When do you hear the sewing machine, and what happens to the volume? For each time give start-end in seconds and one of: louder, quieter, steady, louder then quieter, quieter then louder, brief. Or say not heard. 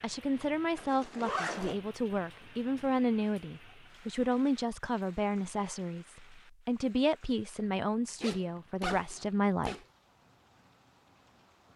not heard.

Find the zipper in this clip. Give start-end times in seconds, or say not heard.
0.8-1.8, 8.2-9.8.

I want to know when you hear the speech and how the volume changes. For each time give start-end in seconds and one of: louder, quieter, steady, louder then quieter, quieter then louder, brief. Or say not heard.
0.0-9.8 steady.